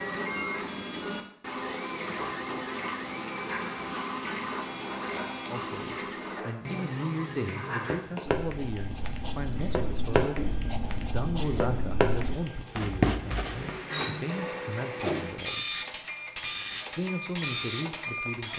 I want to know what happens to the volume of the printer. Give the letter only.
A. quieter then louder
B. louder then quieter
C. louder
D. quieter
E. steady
E.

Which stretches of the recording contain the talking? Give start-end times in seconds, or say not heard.
5.5-15.8, 16.9-18.5.